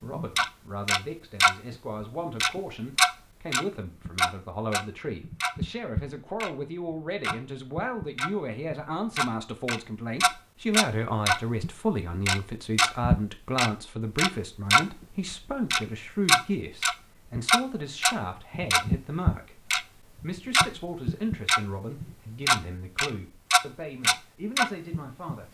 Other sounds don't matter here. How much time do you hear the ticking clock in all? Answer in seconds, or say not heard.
24 s.